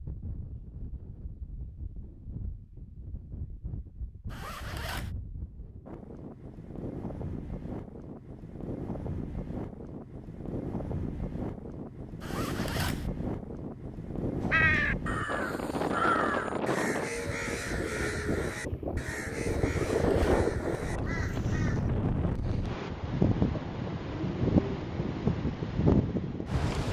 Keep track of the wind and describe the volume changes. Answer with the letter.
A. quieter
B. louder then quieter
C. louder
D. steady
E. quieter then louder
C.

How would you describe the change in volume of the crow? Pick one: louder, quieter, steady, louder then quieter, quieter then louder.
quieter.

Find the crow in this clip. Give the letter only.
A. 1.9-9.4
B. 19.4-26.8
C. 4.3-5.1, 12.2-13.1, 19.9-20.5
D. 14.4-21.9
D.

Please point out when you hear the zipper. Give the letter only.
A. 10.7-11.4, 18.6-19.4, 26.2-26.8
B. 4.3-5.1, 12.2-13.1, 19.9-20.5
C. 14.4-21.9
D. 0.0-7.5
B.